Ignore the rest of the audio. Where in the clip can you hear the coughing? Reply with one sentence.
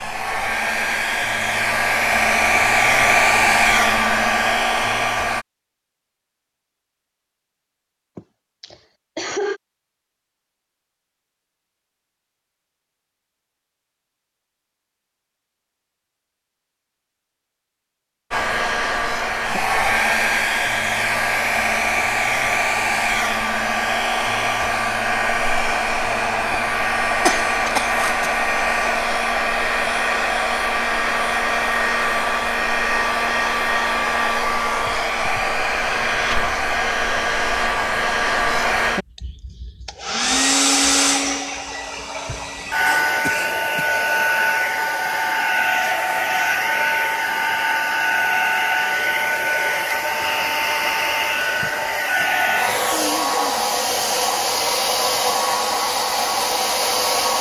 The coughing can be heard from 8.2 to 9.6 s, from 27.2 to 28.3 s and from 42.9 to 43.9 s.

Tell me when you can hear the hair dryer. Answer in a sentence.
The hair dryer can be heard from 0.0 to 5.5 s and from 18.3 to 57.3 s.